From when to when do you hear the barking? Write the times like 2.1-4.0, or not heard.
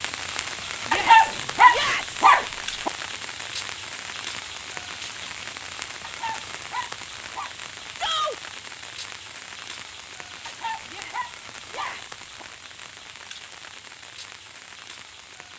0.9-2.9, 6.0-7.5, 10.4-12.4.